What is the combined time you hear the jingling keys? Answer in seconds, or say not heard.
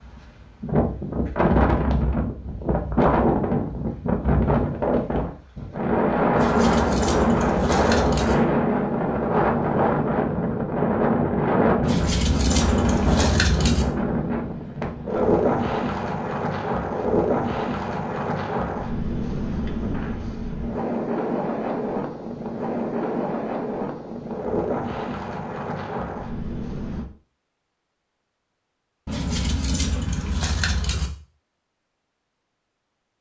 6 s.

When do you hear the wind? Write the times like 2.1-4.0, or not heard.
0.0-27.1.